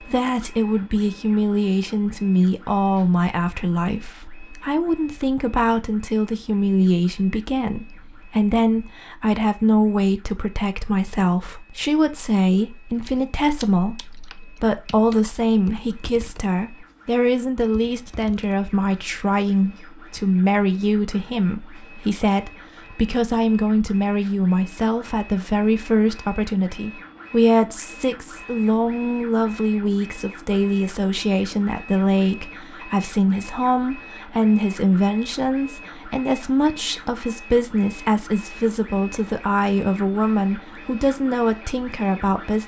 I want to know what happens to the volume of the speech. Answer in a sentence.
The loudness of the speech stays about the same.